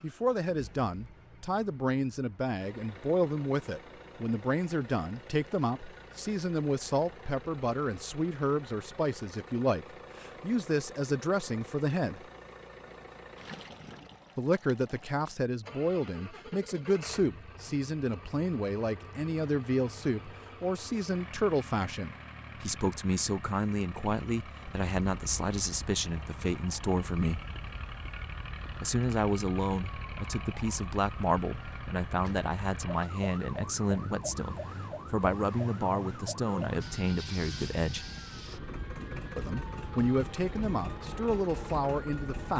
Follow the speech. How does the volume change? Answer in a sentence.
The volume of the speech stays about the same.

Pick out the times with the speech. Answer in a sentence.
The speech can be heard from 0.0 to 12.2 s, from 14.3 to 27.4 s, from 28.8 to 38.0 s and from 39.4 to 42.5 s.